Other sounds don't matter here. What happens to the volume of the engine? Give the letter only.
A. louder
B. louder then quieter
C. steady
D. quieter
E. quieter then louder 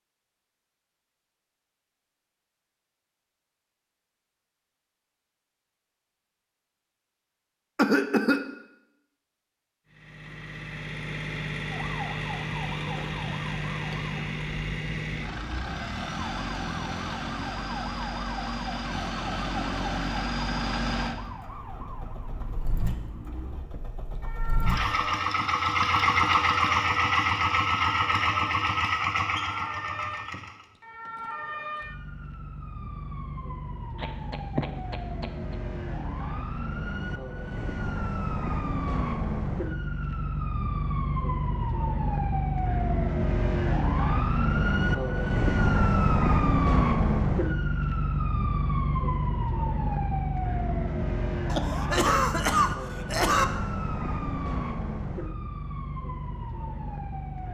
A.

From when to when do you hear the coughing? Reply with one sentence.
You can hear the coughing from 7.8 to 8.5 s, from 34.0 to 35.5 s and from 51.5 to 53.5 s.